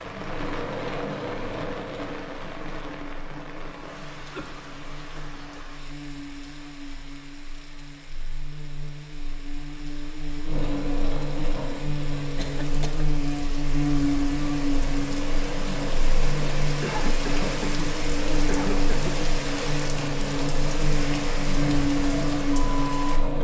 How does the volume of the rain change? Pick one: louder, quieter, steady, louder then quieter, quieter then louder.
quieter then louder.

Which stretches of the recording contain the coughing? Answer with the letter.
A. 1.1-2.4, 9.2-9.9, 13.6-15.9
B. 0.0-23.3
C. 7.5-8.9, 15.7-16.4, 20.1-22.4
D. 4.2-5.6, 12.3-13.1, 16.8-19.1
D.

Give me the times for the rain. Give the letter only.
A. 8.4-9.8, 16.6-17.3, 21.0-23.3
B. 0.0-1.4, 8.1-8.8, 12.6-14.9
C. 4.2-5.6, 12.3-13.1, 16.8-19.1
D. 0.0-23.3
D.